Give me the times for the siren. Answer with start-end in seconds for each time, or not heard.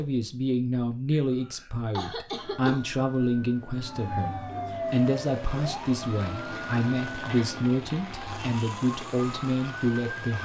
2.2-10.4.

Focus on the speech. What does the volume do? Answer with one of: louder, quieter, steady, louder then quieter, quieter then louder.
steady.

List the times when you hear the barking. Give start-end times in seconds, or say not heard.
not heard.